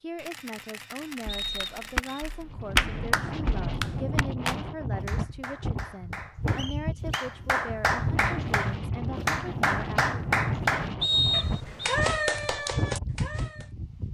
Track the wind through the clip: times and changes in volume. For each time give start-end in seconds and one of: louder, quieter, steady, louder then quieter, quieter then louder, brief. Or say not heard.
2.4-14.0 steady.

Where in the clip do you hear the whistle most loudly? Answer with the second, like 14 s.
11 s.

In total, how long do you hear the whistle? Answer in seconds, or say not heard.
3 s.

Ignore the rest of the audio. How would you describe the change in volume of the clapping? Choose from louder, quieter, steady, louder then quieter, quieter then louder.
quieter then louder.